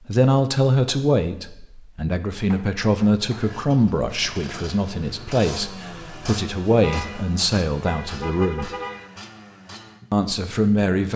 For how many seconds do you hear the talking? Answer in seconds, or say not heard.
10 s.